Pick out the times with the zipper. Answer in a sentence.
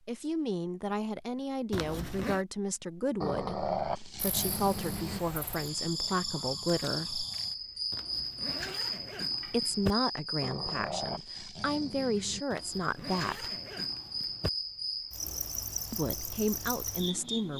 The zipper can be heard from 1.7 to 2.5 s, from 7.9 to 9.9 s and from 12.5 to 14.5 s.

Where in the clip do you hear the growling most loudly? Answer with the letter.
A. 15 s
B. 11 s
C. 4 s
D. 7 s
C.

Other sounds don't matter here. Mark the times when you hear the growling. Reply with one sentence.
You can hear the growling from 3.2 to 5.2 s and from 10.4 to 12.4 s.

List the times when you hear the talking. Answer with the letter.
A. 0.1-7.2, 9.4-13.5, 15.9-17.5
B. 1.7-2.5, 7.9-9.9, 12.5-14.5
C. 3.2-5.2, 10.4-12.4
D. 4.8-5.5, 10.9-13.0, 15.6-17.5
A.